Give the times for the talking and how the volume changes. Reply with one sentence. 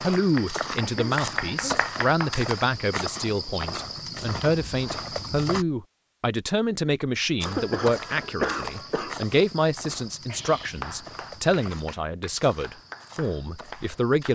You can hear the talking from 0.0 to 14.3 s, at a steady volume.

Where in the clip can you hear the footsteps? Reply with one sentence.
You can hear the footsteps from 0.0 to 5.7 s and from 7.4 to 14.3 s.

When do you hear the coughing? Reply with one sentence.
The coughing can be heard from 0.8 to 1.8 s and from 7.5 to 9.2 s.